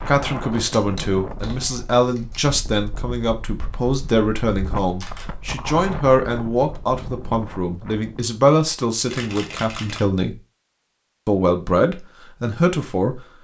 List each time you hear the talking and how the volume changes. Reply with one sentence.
You can hear the talking from 0.1 to 10.4 s, at a steady volume; and briefly from 11.2 to 13.2 s.